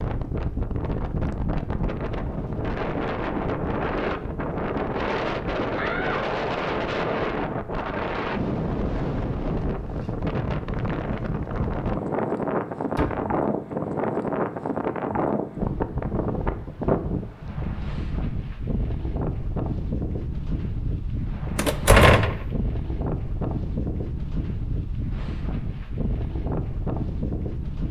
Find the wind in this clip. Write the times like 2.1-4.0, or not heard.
0.0-27.8.